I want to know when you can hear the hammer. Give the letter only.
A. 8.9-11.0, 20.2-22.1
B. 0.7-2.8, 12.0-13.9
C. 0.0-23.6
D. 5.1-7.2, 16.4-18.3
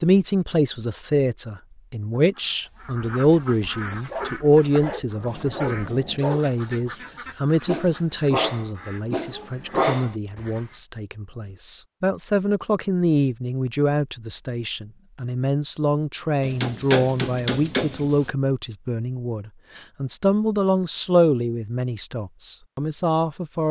D.